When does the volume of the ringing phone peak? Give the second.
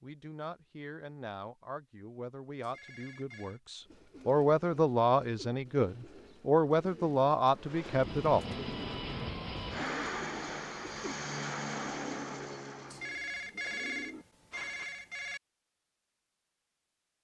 14 s.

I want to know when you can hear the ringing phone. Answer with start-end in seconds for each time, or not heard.
2.6-3.6, 12.9-15.4.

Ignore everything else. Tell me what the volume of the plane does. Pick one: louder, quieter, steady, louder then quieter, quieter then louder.
steady.